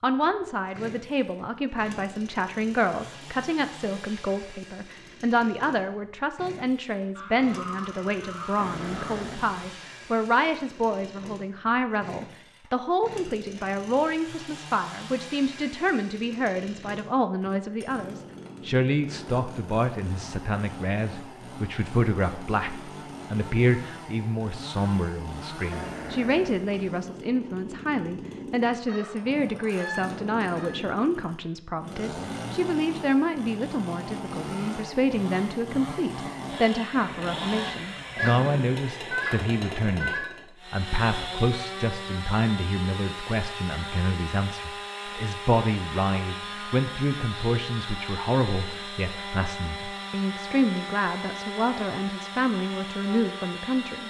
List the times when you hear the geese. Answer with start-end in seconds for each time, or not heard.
7.2-9.2, 28.9-30.8, 38.1-40.2.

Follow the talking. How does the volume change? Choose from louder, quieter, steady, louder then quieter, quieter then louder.
steady.